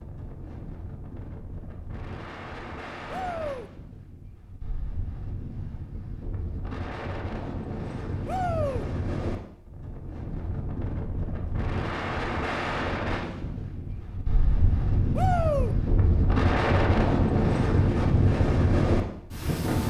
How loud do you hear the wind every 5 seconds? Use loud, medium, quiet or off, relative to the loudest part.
quiet, medium, medium, loud.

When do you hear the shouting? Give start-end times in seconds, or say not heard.
3.1-3.7, 8.2-8.8, 15.2-15.8.